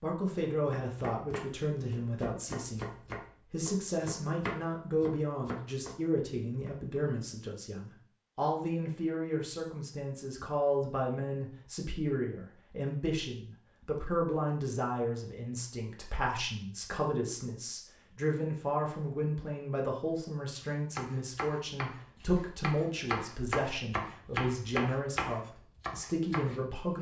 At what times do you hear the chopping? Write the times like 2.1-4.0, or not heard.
0.3-6.8, 20.8-26.6.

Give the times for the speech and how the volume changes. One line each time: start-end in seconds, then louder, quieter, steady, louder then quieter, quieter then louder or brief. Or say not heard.
0.0-26.9 steady.